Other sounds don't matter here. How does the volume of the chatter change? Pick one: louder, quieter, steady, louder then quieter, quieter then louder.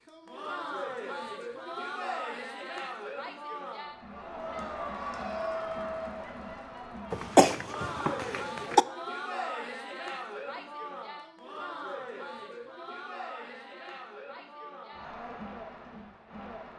quieter.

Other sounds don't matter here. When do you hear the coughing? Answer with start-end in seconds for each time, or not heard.
7.1-8.8.